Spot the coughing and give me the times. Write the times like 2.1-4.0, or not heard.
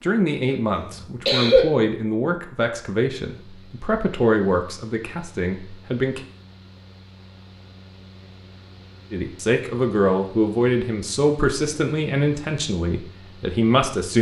0.5-1.6.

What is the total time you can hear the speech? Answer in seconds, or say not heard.
11 s.